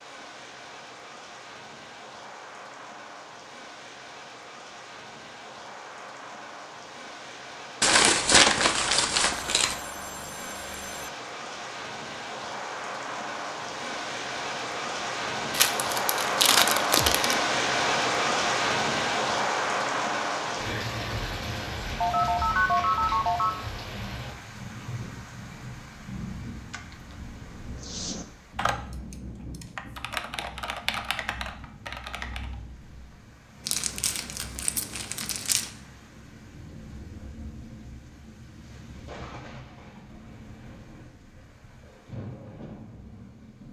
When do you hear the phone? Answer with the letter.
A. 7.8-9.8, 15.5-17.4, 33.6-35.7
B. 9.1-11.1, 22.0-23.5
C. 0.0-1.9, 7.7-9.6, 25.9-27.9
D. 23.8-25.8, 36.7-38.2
B.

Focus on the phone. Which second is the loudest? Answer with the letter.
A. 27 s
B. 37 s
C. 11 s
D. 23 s
D.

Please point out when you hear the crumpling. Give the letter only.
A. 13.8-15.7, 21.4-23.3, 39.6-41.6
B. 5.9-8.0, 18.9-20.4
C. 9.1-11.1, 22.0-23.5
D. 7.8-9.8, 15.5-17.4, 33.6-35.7
D.